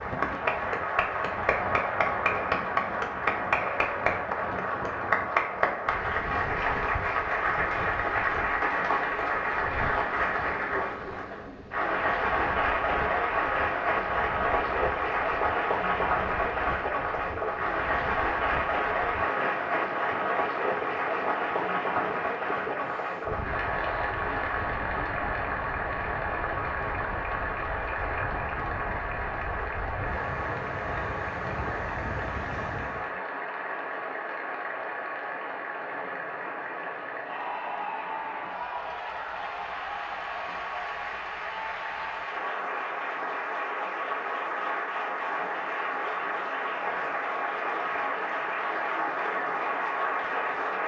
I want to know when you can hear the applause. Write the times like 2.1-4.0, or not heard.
0.0-50.8.